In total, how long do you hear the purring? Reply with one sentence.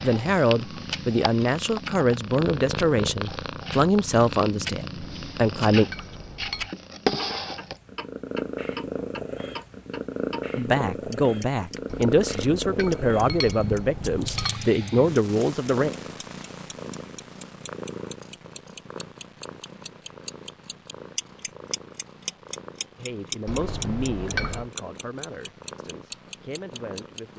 The purring can be heard for 27 seconds in total.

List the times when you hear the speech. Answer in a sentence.
The speech can be heard from 0.0 to 5.8 s, from 10.6 to 15.9 s and from 22.9 to 27.3 s.